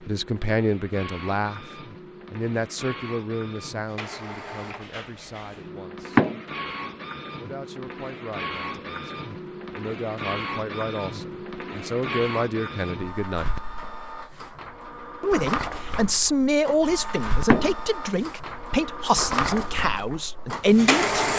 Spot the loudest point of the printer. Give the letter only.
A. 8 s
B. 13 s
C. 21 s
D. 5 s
C.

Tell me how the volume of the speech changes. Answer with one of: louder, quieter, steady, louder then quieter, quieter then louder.
quieter then louder.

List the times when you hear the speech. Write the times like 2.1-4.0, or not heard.
0.1-6.2, 7.3-13.6, 15.2-21.3.